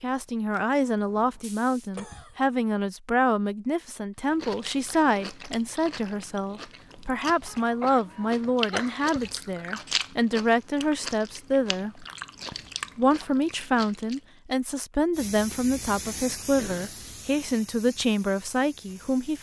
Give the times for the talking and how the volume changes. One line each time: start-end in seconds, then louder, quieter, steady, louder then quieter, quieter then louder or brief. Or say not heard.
0.0-12.1 steady
12.9-19.3 steady.